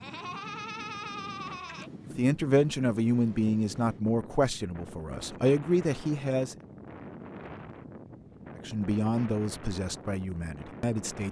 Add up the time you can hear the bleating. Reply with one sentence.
The bleating can be heard for 2 seconds in total.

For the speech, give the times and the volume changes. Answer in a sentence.
The speech can be heard from 2.1 to 6.5 s, getting quieter then louder; and briefly from 8.7 to 11.2 s.